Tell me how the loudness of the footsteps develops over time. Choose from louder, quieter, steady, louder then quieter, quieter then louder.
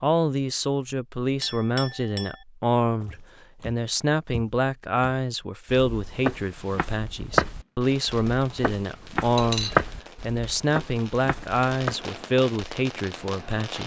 louder then quieter.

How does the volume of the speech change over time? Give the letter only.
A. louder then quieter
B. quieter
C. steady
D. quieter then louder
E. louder
C.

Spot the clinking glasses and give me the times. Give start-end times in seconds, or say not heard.
1.4-2.5, 9.3-9.8.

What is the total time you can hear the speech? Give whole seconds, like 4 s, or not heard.
14 s.